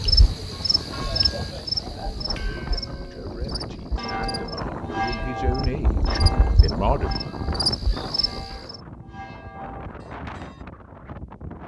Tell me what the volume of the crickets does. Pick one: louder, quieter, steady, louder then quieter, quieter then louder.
quieter then louder.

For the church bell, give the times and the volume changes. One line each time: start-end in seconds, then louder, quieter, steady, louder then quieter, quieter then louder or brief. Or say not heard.
0.5-10.7 louder then quieter.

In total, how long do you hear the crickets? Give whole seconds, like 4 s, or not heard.
9 s.